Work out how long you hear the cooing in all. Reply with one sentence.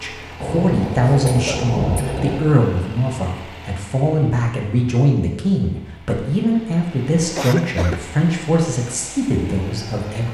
The cooing can't be heard in this clip.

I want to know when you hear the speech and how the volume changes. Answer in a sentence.
You can hear the speech from 0.0 to 10.2 s, at a steady volume.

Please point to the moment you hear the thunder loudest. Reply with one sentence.
The loudest moment of the thunder is at 2 seconds.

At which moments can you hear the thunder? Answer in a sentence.
You can hear the thunder from 0.4 to 2.4 s.